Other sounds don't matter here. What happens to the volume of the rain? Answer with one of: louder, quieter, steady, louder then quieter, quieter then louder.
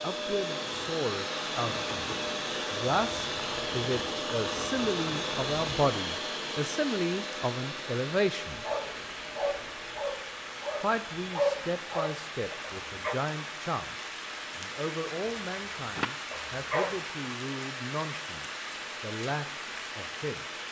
steady.